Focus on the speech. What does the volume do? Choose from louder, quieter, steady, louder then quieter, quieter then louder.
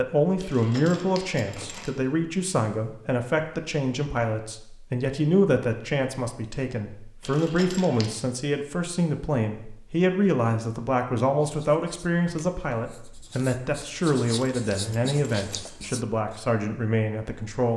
steady.